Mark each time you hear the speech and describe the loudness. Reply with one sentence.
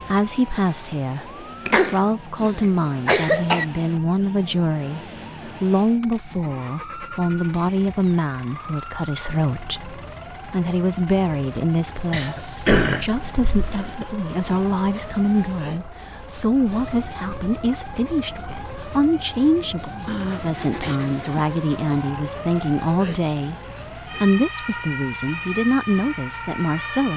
You can hear the speech from 0.1 to 27.1 s, at a steady volume.